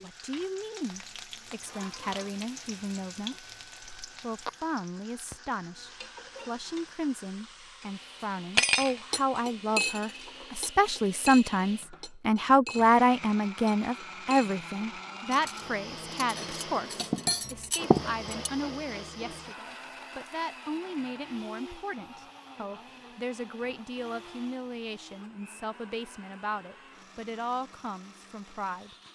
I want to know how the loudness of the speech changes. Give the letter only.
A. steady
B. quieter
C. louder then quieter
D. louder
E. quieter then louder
C.